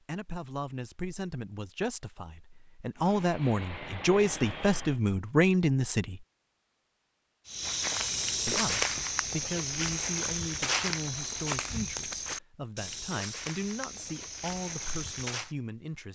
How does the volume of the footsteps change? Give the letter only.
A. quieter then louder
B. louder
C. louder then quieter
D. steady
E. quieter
E.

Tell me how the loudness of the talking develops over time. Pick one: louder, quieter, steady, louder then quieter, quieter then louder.
louder then quieter.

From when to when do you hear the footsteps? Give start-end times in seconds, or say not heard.
7.5-15.5.